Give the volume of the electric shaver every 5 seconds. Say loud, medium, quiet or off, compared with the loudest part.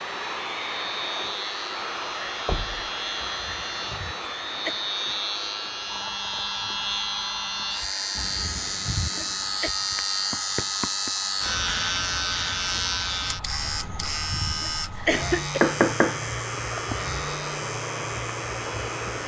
medium, loud, loud, medium.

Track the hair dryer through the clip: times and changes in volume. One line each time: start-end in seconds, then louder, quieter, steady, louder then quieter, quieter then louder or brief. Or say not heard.
0.0-19.2 quieter then louder.